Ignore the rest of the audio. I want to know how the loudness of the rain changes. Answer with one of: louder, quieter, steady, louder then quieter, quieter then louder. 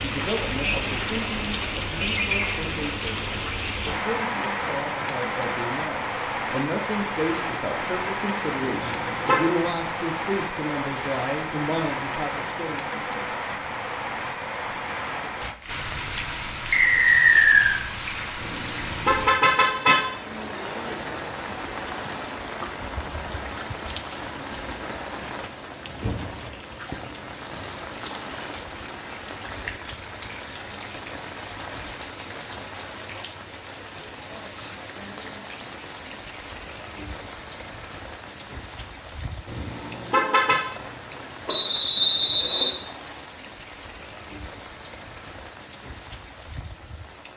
quieter.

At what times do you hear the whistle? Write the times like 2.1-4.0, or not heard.
16.7-17.8, 41.5-42.8.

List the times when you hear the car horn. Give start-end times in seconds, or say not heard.
8.6-9.4, 18.4-20.0, 39.5-40.5.